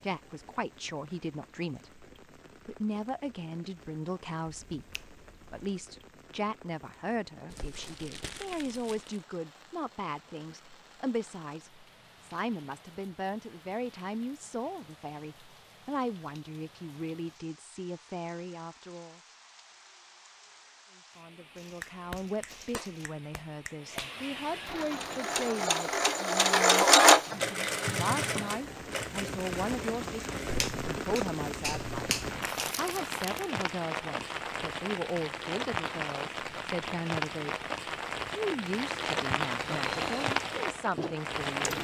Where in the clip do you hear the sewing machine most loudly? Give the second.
27 s.